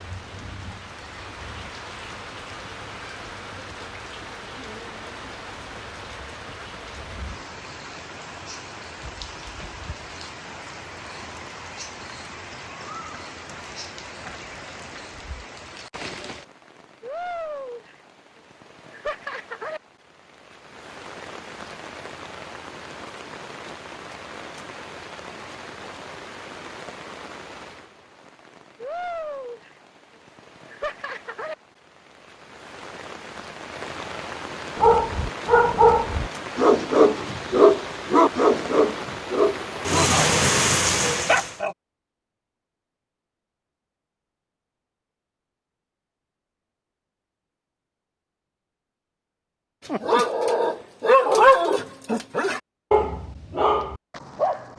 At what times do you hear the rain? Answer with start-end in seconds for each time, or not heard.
0.0-41.6.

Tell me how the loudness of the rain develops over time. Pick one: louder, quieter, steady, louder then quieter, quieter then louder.
louder.